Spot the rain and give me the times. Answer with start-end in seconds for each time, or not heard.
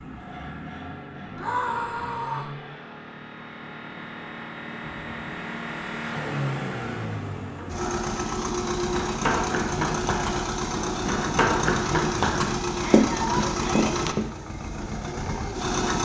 not heard.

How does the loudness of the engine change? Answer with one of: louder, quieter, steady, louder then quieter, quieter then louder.
louder.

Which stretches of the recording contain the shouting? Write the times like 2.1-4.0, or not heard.
1.4-2.5, 12.7-13.9.